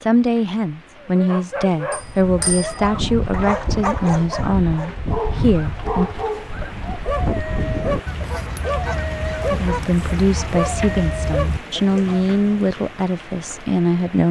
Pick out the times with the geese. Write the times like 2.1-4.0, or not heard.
1.9-12.7.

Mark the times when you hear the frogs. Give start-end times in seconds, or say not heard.
not heard.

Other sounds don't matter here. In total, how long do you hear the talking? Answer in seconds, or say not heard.
11 s.